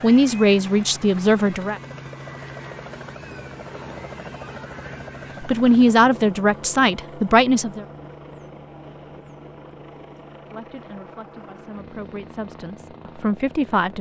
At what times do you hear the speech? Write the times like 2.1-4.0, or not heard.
0.0-1.8, 5.4-7.8, 10.5-13.9.